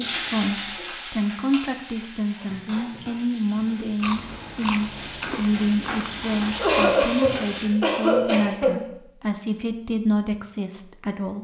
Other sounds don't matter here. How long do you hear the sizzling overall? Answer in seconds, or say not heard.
8 s.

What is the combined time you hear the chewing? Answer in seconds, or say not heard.
3 s.